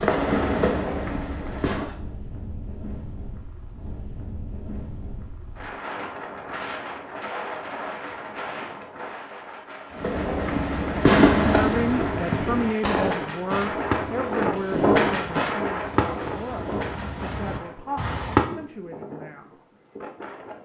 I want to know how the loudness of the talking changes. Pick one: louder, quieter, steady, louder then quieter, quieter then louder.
quieter.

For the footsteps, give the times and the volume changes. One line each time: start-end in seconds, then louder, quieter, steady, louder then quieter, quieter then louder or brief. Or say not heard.
not heard.